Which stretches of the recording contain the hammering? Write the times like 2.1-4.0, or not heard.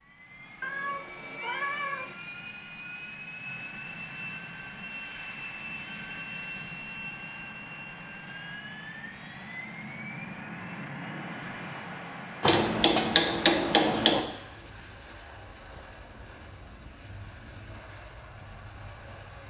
12.4-14.2.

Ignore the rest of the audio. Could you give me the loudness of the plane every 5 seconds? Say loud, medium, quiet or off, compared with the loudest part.
loud, loud, loud, medium.